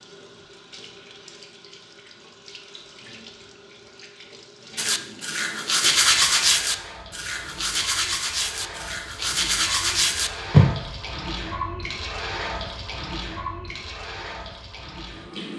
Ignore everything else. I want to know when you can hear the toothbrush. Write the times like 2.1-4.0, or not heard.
4.8-10.9.